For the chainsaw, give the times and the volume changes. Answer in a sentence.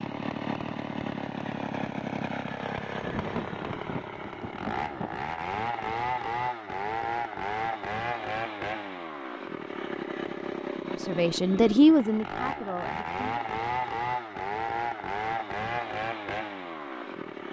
The chainsaw can be heard from 0.0 to 17.4 s, at a steady volume.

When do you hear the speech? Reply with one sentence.
The speech can be heard from 11.1 to 13.2 s.